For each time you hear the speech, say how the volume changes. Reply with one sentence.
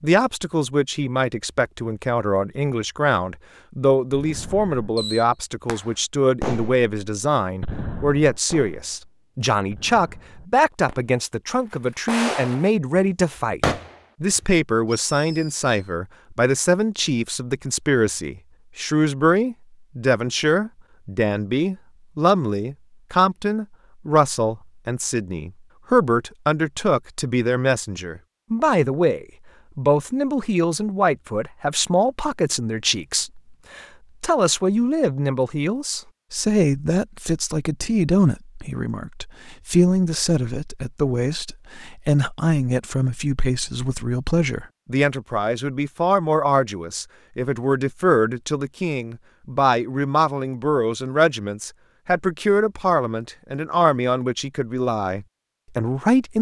The speech can be heard from 0.0 to 56.3 s, at a steady volume.